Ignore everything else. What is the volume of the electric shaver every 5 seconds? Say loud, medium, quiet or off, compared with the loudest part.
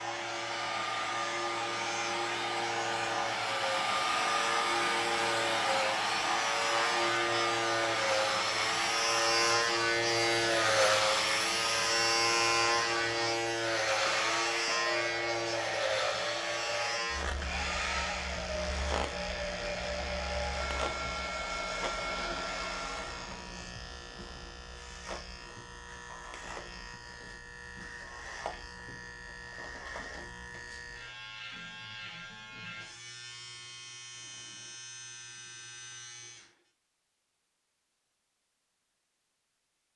medium, loud, loud, medium, quiet, quiet, quiet, quiet.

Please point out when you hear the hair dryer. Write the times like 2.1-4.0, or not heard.
0.0-23.4.